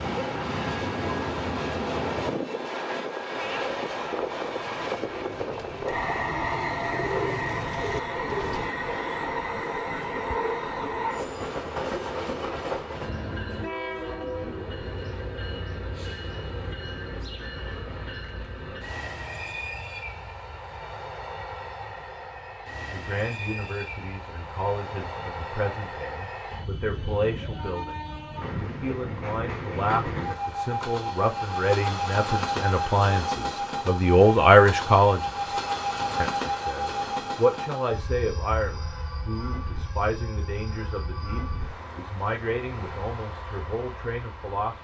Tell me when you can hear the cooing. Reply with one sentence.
The cooing can be heard from 3.3 to 8.7 s.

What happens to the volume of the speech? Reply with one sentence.
The volume of the speech goes up, then down.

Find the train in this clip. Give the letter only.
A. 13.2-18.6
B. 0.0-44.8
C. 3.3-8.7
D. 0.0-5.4
B.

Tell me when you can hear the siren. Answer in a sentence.
You can't hear the siren here.